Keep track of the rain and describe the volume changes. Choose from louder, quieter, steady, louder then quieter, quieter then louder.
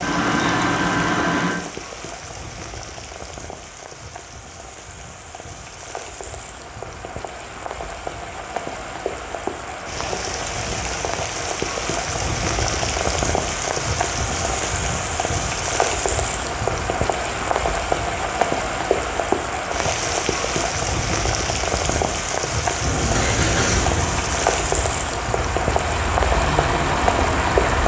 louder.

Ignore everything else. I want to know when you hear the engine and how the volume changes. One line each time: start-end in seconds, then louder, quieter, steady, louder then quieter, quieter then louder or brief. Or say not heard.
0.0-1.6 brief
22.8-27.8 quieter then louder.